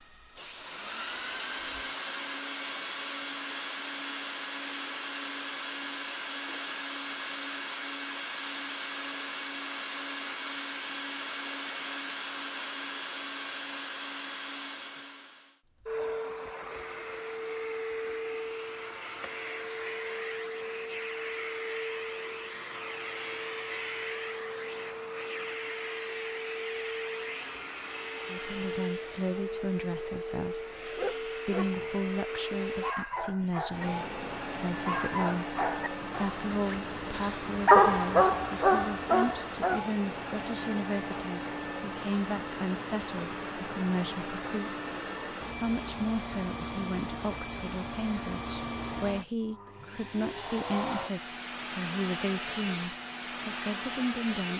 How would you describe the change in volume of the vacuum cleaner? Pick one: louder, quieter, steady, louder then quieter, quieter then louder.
steady.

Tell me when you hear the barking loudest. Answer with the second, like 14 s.
38 s.